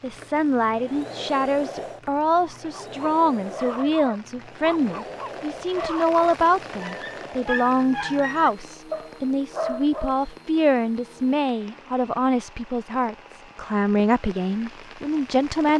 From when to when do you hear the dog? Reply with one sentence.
You can hear the dog from 2.5 to 10.2 s.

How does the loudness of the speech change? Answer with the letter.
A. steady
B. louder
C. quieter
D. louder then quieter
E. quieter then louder
A.